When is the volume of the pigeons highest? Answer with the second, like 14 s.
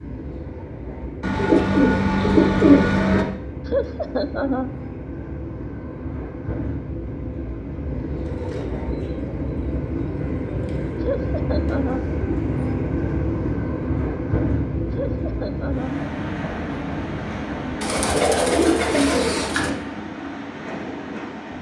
3 s.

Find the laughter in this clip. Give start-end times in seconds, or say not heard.
3.7-4.7, 11.0-12.1, 14.9-15.9.